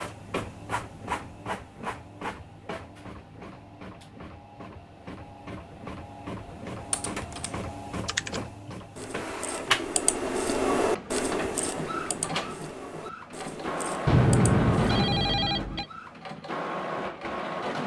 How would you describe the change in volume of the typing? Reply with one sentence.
The loudness of the typing goes up, then down.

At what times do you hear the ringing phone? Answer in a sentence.
The ringing phone can be heard from 14.1 to 15.8 s.